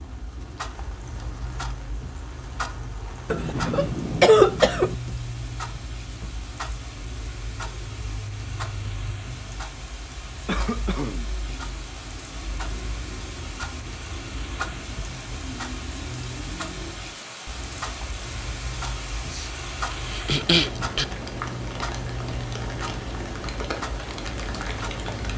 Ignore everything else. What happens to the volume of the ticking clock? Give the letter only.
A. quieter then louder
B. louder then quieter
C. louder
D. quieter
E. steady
E.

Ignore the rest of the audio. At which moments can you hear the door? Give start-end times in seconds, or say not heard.
not heard.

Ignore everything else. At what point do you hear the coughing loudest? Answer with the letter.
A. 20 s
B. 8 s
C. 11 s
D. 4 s
D.